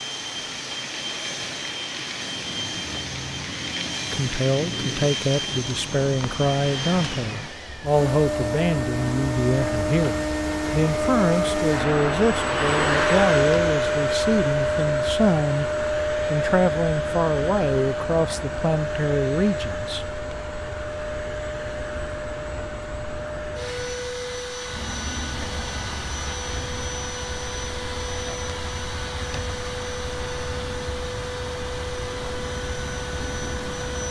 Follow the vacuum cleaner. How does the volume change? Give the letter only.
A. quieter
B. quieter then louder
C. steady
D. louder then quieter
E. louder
D.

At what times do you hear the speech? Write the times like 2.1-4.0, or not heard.
4.1-15.7, 16.3-20.1.